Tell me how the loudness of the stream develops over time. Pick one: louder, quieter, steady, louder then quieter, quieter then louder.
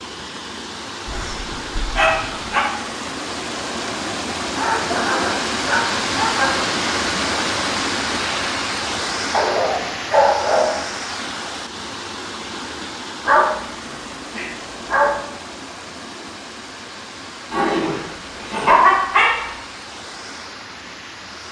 louder then quieter.